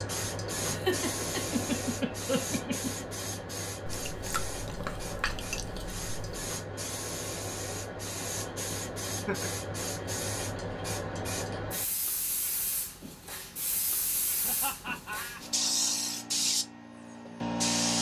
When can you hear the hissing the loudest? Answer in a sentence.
The loudest moment of the hissing is at 16 seconds.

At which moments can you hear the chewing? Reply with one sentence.
The chewing can be heard from 3.9 to 6.3 s.